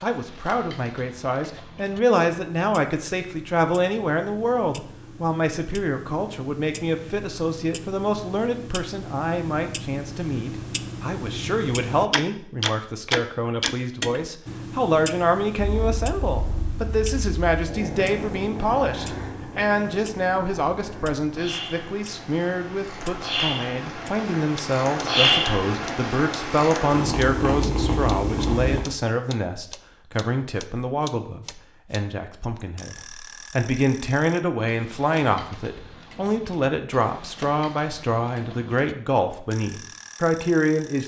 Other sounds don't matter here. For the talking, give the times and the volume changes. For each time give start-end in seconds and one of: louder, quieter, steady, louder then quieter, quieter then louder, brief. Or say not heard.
0.0-41.0 steady.